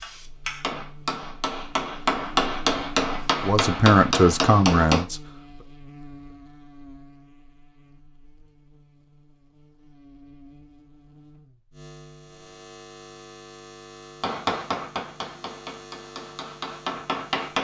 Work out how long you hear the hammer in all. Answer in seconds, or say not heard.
8 s.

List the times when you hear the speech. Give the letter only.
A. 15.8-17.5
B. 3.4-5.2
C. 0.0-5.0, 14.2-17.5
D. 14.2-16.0
B.